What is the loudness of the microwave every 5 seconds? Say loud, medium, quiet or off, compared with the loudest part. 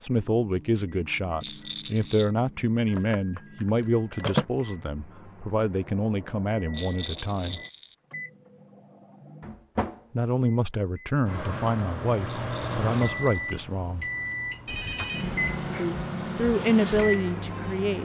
quiet, medium, loud, loud.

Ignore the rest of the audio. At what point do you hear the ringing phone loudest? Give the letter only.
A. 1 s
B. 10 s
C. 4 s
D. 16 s
C.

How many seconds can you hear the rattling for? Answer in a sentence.
The rattling can be heard for 3 seconds in total.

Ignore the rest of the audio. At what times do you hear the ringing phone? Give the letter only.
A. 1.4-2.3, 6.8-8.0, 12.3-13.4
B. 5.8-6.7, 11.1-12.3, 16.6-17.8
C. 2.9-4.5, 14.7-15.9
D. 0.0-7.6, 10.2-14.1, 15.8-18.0
C.